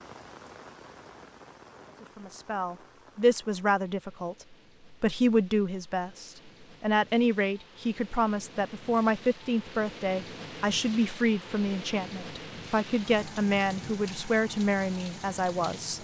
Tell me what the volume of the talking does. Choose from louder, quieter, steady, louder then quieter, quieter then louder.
steady.